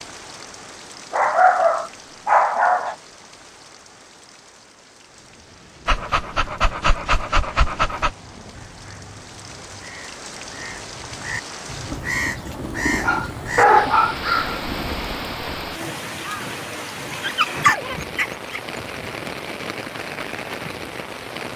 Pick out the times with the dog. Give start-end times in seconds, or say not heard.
1.1-3.0, 5.8-8.1, 12.6-14.2, 17.1-19.1.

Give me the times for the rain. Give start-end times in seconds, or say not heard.
0.0-21.5.